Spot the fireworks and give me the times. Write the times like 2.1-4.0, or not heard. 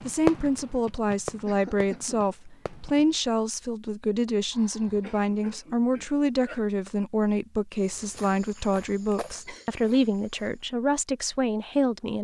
0.0-3.1.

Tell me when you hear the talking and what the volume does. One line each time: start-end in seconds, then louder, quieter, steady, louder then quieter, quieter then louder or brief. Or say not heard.
0.1-12.1 steady.